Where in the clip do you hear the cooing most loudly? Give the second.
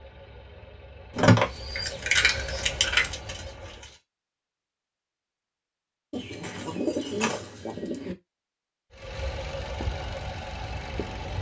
7 s.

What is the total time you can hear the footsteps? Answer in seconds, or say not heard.
not heard.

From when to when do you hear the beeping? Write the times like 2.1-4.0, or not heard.
not heard.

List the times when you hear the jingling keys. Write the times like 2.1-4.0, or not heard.
1.1-3.1, 6.4-7.5.